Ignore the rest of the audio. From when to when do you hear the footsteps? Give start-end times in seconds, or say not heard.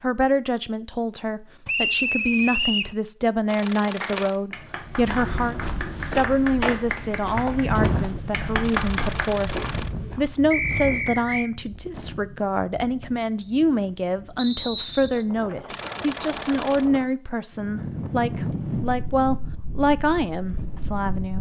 4.8-10.4.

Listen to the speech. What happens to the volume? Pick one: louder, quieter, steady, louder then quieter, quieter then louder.
steady.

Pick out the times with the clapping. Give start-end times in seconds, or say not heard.
4.0-9.3.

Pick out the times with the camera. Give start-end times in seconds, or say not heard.
3.5-4.4, 8.6-9.9, 15.7-16.9.